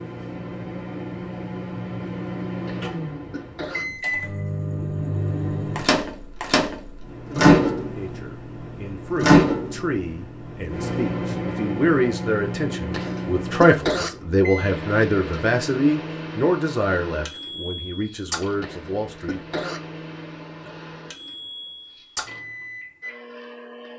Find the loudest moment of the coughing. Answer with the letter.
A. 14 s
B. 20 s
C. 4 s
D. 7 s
A.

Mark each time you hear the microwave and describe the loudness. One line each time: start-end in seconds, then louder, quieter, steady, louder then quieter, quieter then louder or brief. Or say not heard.
0.0-23.9 louder then quieter.